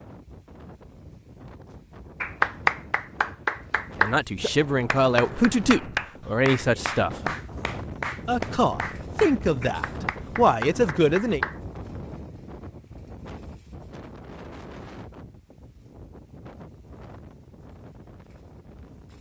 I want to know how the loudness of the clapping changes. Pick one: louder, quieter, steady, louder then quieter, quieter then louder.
quieter.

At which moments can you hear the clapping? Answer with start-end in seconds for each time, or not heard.
2.2-11.6.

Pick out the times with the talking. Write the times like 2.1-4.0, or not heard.
4.0-7.3, 8.2-11.4.